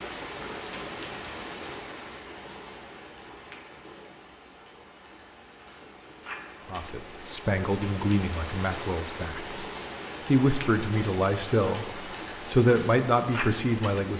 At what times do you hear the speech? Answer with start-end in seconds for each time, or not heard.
6.7-9.6, 10.2-14.1.